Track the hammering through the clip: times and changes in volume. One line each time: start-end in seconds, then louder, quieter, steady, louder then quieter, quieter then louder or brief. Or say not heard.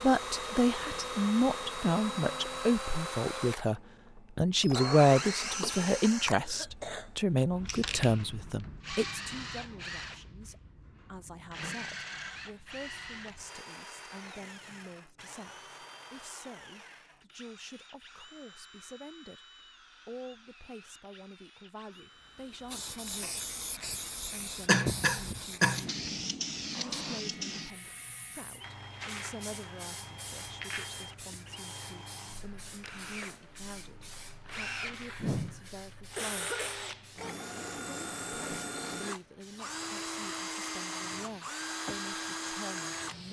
not heard.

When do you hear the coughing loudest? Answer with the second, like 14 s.
25 s.